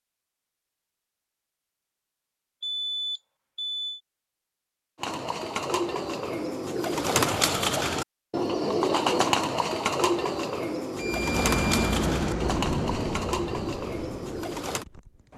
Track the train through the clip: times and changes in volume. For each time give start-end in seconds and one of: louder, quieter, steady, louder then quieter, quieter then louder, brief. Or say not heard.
11.0-15.3 quieter.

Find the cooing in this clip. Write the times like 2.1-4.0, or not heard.
5.0-14.8.